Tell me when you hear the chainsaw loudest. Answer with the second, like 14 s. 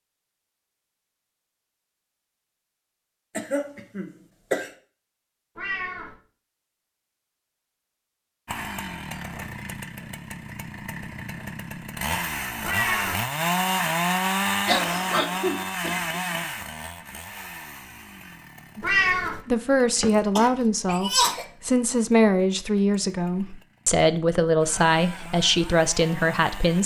14 s.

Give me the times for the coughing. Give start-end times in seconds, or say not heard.
3.4-4.7, 14.7-16.2, 19.9-21.4.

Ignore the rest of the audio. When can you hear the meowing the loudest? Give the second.
19 s.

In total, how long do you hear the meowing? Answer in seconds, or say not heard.
2 s.